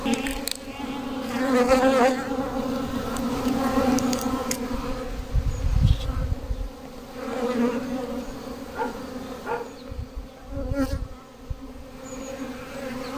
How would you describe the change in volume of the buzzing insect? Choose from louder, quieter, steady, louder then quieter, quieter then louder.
quieter.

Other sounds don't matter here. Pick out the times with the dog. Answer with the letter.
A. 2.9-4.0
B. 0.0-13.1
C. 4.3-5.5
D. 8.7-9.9
D.